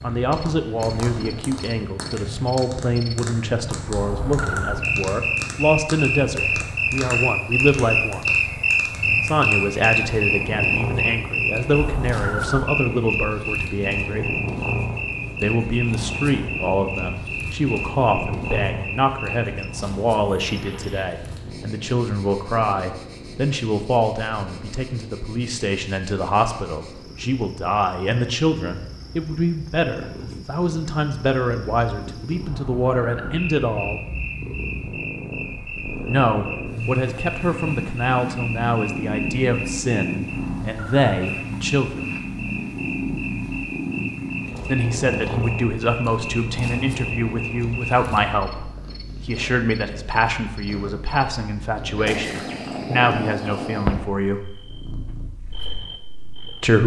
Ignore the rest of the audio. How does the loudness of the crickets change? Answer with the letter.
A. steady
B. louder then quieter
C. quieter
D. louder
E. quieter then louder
E.